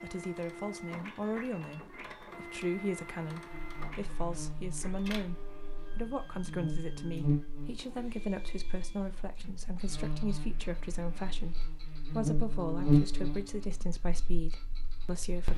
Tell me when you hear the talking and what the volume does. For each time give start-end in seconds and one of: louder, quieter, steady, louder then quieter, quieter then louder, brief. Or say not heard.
0.0-15.5 steady.